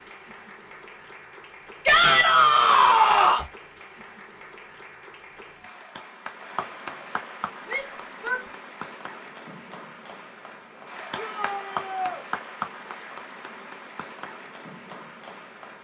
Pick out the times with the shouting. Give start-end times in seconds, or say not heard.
1.9-3.5, 7.7-8.4, 11.2-12.2.